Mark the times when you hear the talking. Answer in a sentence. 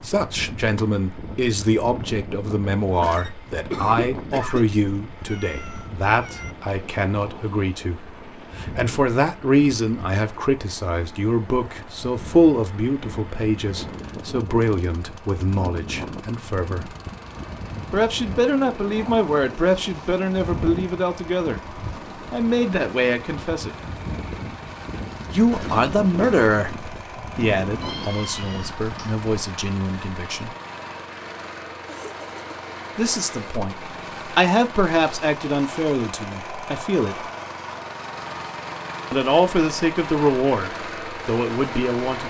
You can hear the talking from 0.0 to 16.9 s, from 17.9 to 21.6 s, from 22.3 to 23.8 s, from 25.3 to 30.5 s, from 33.0 to 37.2 s and from 39.1 to 42.2 s.